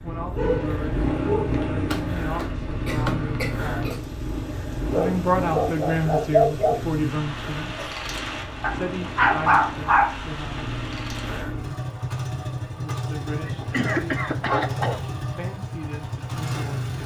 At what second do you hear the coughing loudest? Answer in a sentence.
The loudest moment of the coughing is at 14 seconds.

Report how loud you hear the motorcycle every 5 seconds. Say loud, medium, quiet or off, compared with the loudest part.
loud, medium, loud, loud.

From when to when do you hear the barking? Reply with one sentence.
You can hear the barking from 0.3 to 1.4 s, from 4.9 to 6.8 s, from 8.6 to 10.6 s and from 13.6 to 14.9 s.